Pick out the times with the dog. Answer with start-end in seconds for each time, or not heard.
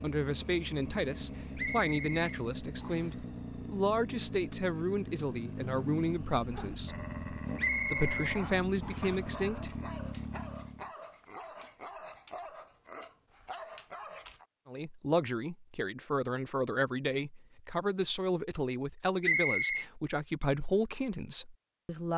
6.5-14.4.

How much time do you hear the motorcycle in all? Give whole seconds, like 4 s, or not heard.
11 s.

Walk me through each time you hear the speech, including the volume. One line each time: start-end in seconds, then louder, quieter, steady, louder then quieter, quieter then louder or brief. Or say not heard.
0.0-7.0 steady
7.9-9.7 brief
14.7-22.1 steady.